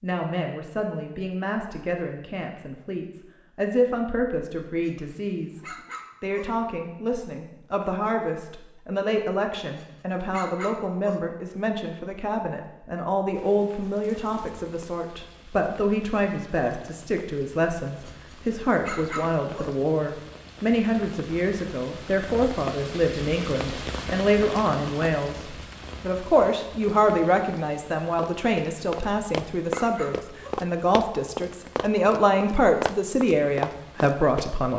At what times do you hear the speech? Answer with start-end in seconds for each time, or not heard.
0.0-34.7.